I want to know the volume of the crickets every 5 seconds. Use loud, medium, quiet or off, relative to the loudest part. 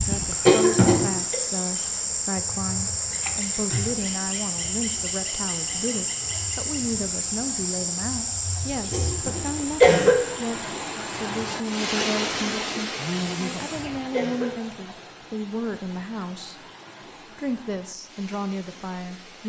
loud, loud, medium, off.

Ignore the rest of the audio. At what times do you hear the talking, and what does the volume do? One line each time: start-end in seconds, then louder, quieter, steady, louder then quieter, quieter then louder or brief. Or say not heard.
0.1-16.6 steady
17.2-19.4 brief.